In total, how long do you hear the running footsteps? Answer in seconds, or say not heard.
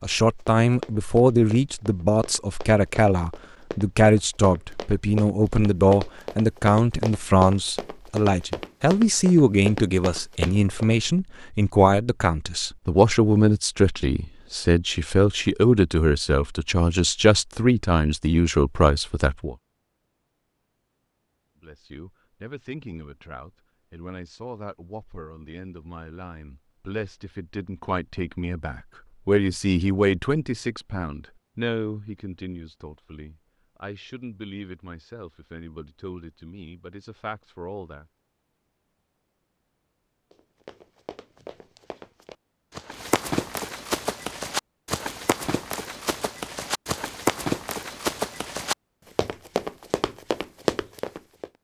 22 s.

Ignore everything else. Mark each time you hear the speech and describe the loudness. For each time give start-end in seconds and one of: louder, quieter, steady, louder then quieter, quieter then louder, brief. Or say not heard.
0.0-19.6 steady
21.6-38.1 louder then quieter.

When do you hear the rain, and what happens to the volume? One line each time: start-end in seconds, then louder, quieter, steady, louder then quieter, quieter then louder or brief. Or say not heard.
not heard.